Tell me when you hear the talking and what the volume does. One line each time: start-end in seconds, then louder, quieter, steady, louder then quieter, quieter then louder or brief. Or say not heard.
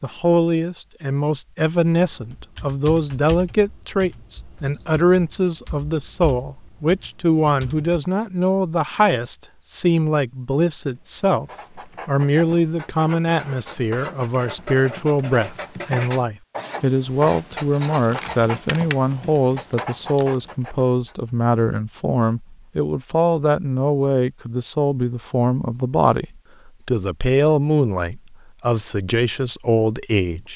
0.0-30.5 steady.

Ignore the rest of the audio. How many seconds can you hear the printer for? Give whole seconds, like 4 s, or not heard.
not heard.